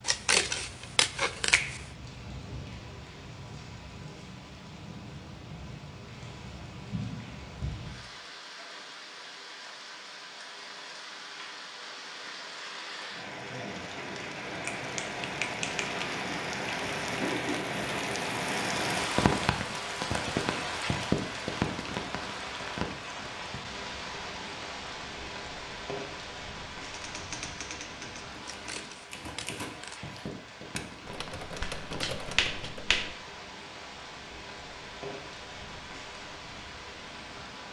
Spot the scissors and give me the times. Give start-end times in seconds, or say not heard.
0.0-1.9, 28.4-30.0.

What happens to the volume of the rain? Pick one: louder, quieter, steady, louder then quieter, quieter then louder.
louder then quieter.